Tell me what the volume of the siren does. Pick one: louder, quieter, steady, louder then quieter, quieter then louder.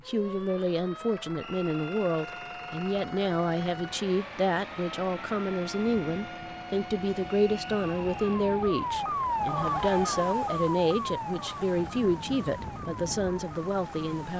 louder then quieter.